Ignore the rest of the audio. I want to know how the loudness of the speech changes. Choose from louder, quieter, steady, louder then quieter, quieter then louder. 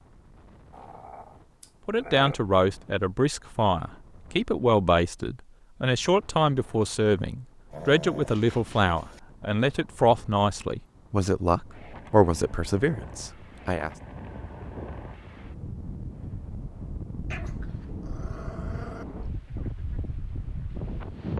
steady.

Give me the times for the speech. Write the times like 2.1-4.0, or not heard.
1.9-13.9.